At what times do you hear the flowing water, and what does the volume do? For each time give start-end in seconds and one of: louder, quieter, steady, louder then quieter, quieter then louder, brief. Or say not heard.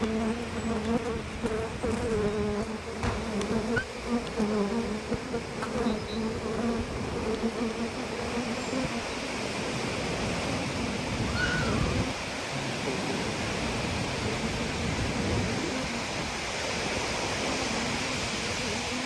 0.0-19.0 louder.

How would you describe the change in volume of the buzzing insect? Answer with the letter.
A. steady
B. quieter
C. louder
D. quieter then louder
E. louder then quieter
B.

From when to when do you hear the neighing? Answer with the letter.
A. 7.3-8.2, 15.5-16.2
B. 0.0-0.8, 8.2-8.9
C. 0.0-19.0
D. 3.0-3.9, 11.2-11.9
D.